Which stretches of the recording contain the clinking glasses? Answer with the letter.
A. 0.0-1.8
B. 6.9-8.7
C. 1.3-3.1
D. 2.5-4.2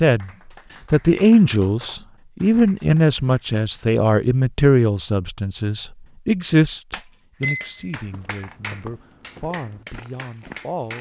B.